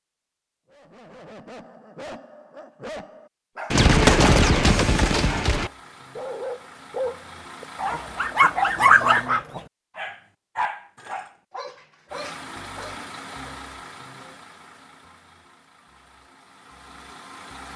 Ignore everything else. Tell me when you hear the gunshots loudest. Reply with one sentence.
The volume of the gunshots peaks at 4 seconds.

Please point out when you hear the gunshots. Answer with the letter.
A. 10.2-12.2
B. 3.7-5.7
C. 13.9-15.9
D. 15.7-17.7
B.